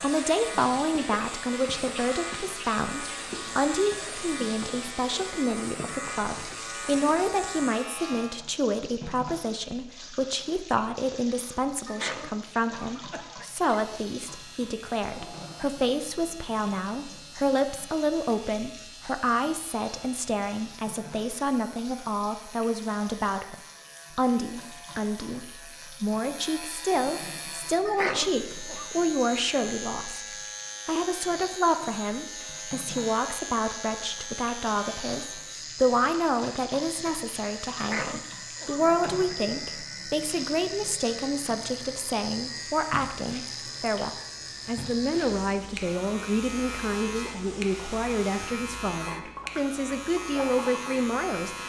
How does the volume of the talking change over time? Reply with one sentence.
The volume of the talking stays about the same.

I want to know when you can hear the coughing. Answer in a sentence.
You can hear the coughing from 11.8 to 13.7 s, from 27.9 to 28.9 s and from 37.8 to 39.3 s.